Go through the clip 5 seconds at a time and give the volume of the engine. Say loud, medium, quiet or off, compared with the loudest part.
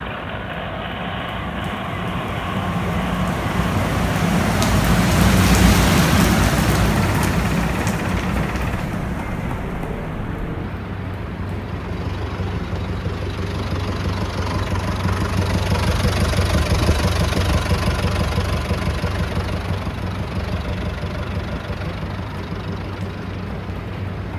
medium, medium, medium, loud, medium.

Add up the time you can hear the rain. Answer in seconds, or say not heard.
24 s.